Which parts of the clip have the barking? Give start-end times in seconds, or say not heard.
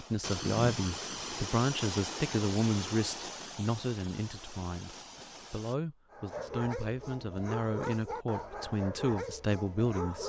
6.1-10.2.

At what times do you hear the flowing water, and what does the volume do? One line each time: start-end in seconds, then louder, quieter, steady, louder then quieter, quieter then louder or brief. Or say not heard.
0.0-5.8 quieter.